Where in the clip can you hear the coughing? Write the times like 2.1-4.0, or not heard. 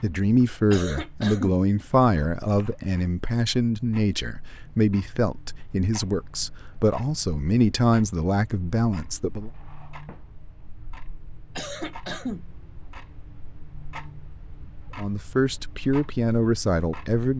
0.7-1.6, 11.6-12.4.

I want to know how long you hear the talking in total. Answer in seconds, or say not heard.
12 s.